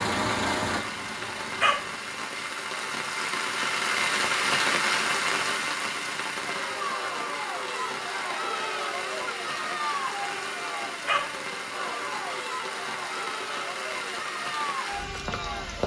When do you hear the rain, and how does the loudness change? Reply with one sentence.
The rain can be heard from 0.0 to 15.8 s, getting louder then quieter.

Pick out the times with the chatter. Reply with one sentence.
The chatter can be heard from 6.3 to 15.8 s.